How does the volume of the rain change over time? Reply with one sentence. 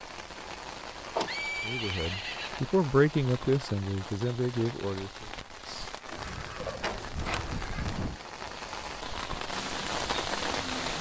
The loudness of the rain goes up.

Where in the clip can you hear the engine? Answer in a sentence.
The engine can be heard from 9.4 to 10.9 s.